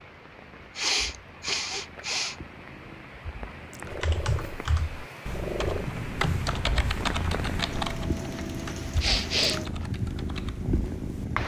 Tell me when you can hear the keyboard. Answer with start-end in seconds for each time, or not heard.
3.9-11.2.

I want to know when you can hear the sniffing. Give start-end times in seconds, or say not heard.
0.8-2.4, 9.0-9.6.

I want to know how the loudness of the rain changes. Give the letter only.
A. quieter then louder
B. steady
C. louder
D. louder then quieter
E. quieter
C.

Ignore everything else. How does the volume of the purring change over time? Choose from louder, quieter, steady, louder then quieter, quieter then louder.
louder.